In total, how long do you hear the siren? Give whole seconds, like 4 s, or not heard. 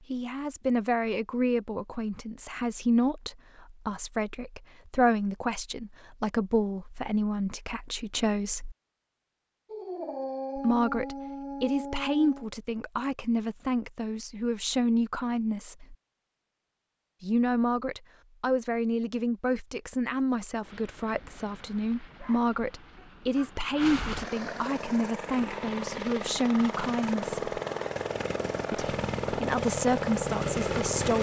not heard.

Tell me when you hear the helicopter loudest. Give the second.
30 s.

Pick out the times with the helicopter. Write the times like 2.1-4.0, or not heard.
20.6-31.1.